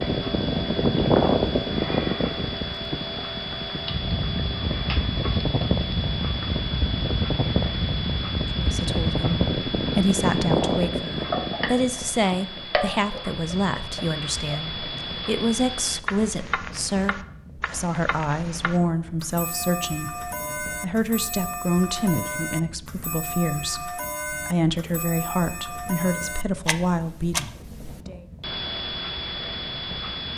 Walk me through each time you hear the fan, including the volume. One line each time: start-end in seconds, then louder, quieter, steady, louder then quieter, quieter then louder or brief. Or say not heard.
0.0-30.3 quieter.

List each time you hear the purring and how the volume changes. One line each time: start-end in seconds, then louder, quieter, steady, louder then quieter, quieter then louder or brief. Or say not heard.
not heard.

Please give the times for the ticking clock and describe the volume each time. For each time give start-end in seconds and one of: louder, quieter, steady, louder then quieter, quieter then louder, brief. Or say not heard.
0.0-30.3 steady.